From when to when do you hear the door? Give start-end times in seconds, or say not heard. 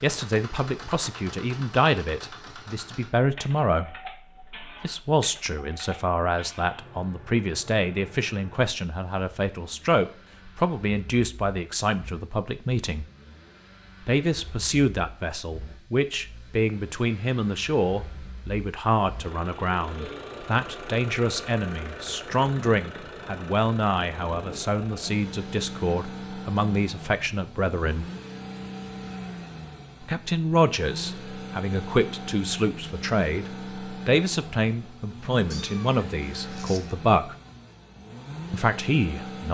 not heard.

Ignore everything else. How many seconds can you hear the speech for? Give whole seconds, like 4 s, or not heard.
35 s.